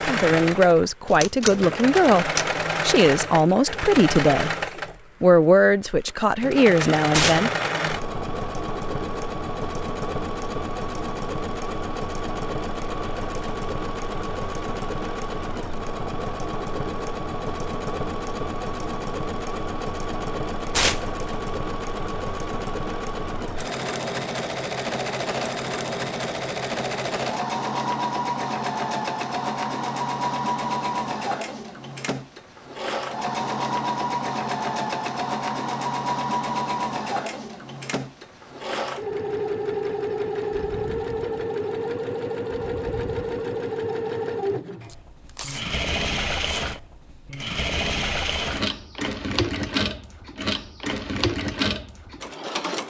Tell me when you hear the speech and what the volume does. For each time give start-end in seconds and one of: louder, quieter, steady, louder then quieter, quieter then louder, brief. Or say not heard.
0.0-4.5 steady
5.2-7.5 brief.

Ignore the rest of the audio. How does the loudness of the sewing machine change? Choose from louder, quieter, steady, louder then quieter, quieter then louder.
steady.